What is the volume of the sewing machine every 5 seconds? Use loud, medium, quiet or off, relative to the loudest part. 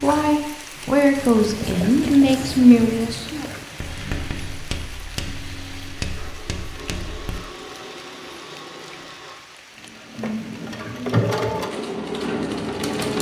quiet, quiet, loud.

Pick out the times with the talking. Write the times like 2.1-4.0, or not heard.
0.0-3.5.